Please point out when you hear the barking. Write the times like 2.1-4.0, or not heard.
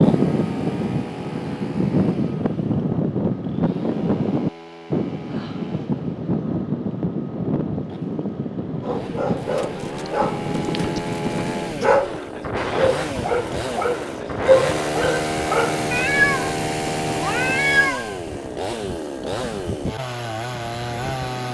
8.8-15.9.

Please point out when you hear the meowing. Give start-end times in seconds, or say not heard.
15.9-18.1.